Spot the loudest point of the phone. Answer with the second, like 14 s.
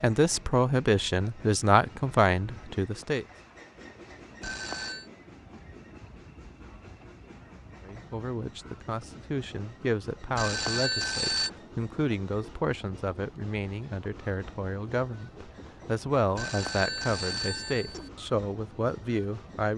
11 s.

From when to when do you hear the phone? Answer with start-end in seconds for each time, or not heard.
4.4-5.1, 10.3-11.5, 16.4-18.1.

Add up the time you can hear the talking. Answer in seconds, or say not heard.
15 s.